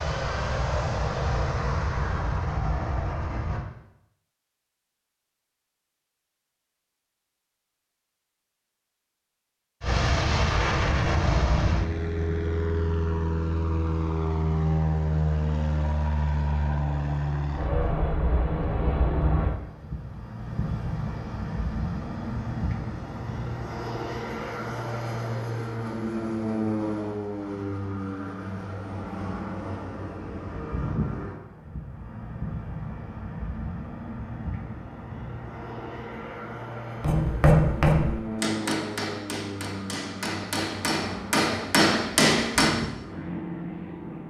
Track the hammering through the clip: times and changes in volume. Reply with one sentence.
You can hear the hammering from 37.0 to 42.8 s, getting quieter then louder.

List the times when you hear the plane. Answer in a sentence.
You can hear the plane from 0.0 to 3.6 s and from 9.8 to 44.2 s.